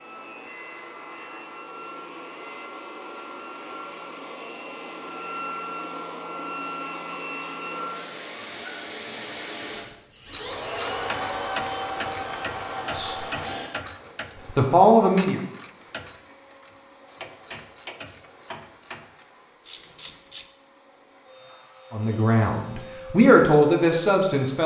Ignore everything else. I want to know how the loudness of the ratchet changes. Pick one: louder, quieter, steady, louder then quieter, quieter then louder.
quieter.